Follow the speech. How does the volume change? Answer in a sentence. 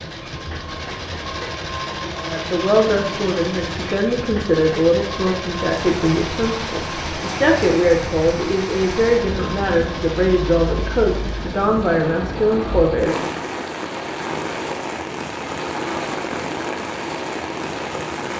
The loudness of the speech stays about the same.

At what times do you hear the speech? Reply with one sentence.
You can hear the speech from 2.2 to 13.3 s.